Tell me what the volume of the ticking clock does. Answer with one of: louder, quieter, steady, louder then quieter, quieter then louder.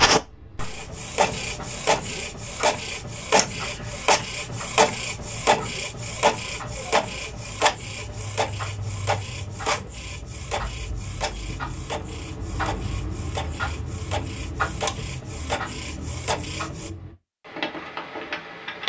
louder.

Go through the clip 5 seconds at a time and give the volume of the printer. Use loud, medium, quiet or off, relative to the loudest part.
loud, loud, medium, medium.